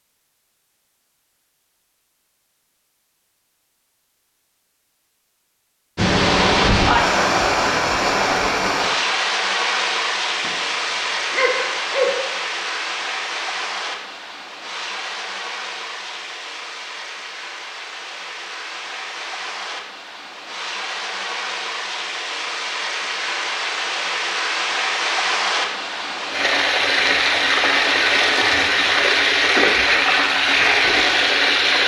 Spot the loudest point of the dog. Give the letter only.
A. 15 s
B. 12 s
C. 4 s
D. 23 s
B.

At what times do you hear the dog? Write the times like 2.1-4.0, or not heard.
10.4-12.2.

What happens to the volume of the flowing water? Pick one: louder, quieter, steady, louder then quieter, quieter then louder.
quieter then louder.